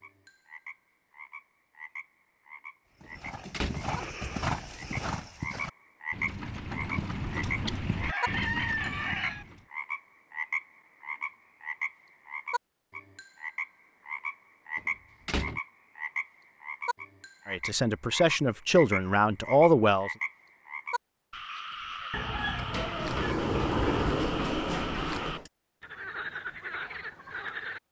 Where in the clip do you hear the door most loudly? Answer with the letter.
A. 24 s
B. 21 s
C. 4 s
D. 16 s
A.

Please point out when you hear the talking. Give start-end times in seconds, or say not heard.
17.4-20.1.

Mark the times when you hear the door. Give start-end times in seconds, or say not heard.
3.0-3.9, 14.8-15.6, 22.7-25.5.